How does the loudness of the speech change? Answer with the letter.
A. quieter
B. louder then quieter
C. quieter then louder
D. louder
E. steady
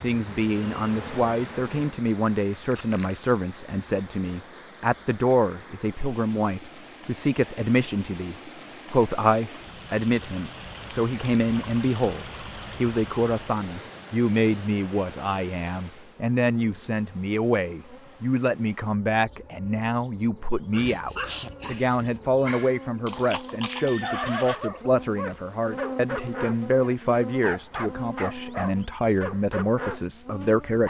E.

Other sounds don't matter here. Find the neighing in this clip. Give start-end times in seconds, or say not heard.
23.1-24.7.